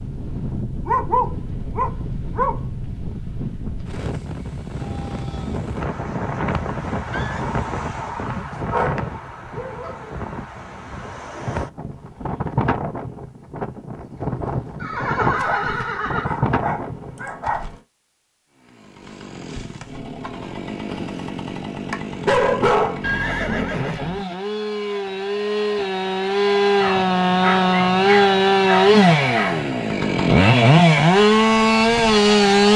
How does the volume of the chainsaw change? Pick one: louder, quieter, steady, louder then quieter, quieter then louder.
louder.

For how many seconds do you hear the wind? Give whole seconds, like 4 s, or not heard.
17 s.